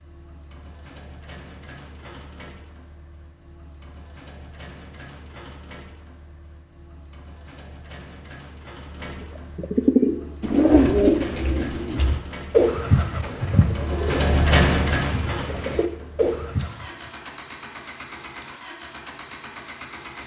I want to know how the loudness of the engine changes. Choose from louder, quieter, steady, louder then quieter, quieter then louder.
louder then quieter.